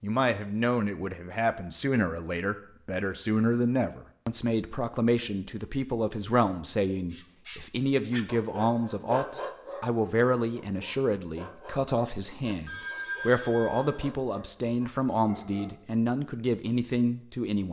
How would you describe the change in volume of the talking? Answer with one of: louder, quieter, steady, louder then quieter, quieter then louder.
steady.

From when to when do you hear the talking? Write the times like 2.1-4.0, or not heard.
0.0-17.6.